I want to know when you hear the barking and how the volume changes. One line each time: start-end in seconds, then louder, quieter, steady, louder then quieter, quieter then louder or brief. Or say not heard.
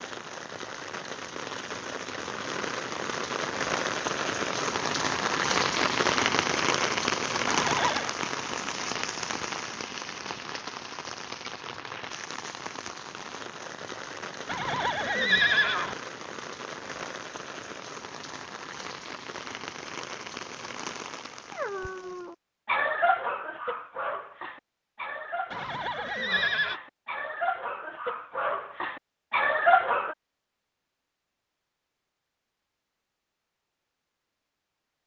21.6-30.1 quieter then louder.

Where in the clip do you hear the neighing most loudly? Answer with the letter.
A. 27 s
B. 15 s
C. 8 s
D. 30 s
B.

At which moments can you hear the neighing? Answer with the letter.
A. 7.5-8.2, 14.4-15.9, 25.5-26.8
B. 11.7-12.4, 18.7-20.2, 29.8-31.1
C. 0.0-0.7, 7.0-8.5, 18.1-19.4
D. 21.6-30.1
A.